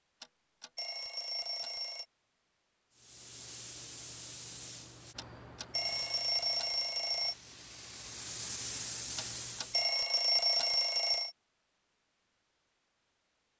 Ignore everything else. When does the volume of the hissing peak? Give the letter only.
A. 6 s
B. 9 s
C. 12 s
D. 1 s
B.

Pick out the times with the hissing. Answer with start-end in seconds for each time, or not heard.
3.0-9.9.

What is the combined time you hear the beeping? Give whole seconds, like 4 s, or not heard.
6 s.